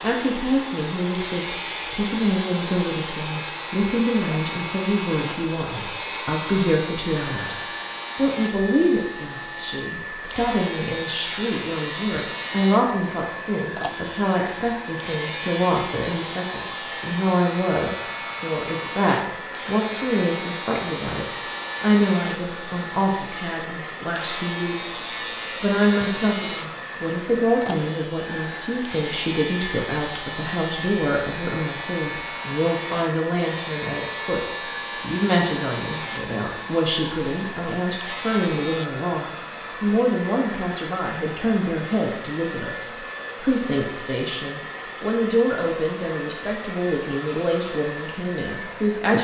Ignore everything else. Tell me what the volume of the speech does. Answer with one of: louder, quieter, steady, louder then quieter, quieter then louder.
steady.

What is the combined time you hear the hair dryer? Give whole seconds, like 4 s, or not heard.
49 s.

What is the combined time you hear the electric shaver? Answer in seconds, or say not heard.
39 s.